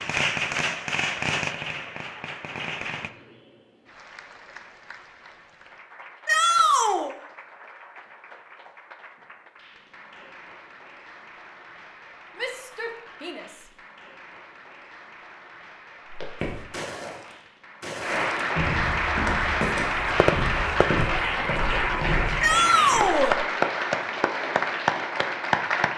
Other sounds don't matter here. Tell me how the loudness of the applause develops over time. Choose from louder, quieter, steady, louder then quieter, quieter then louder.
louder.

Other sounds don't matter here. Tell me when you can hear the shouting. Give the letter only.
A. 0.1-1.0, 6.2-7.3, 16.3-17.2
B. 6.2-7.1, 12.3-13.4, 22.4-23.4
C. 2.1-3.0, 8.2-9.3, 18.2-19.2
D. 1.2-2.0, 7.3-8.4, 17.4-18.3
B.